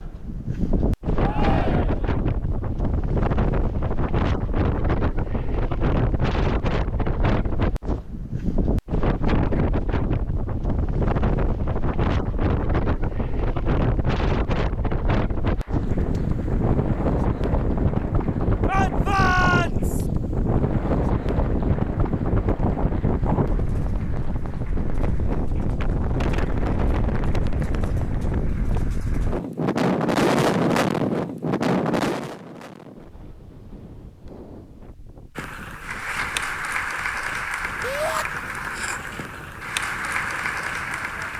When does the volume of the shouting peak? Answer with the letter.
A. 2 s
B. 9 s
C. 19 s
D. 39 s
C.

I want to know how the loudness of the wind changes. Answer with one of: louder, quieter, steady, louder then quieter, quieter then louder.
quieter.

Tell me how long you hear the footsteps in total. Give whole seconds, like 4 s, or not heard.
not heard.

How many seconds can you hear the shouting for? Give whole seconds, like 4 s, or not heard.
3 s.